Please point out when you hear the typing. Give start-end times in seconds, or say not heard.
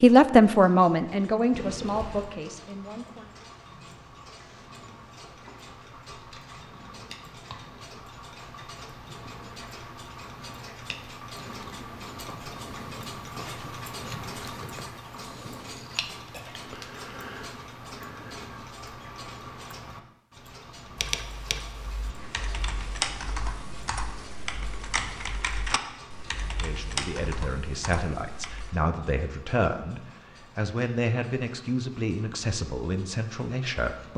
20.9-28.8.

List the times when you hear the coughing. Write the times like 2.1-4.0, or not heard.
1.6-2.4.